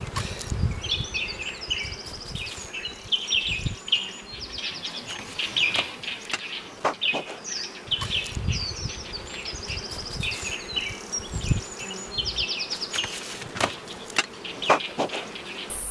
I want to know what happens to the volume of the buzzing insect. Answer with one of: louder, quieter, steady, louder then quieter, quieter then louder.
louder.